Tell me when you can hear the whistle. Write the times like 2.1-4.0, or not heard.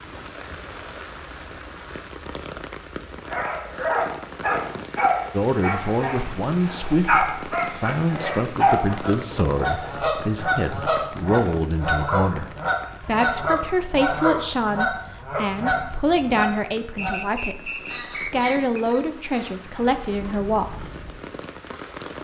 16.9-18.9.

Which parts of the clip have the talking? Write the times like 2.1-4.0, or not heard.
5.3-20.9.